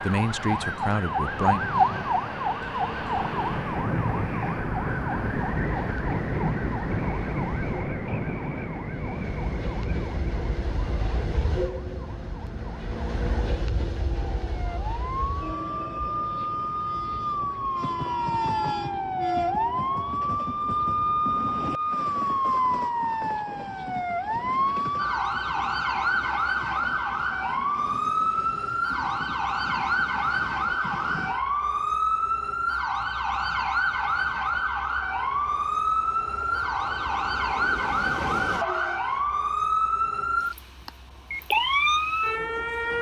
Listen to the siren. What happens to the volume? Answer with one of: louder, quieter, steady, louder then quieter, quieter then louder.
quieter then louder.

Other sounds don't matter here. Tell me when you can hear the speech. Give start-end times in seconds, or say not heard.
0.0-1.6.